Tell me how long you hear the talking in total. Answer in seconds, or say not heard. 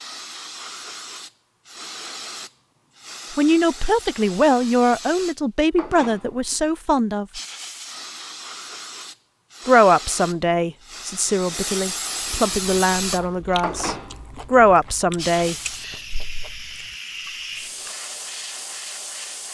10 s.